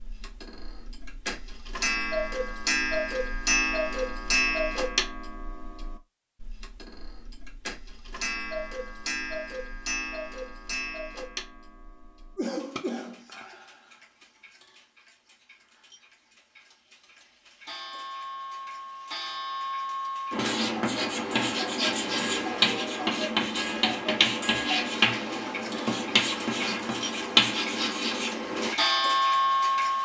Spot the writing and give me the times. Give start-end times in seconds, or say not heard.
20.3-28.8.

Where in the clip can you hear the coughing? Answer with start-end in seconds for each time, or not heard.
12.3-13.6.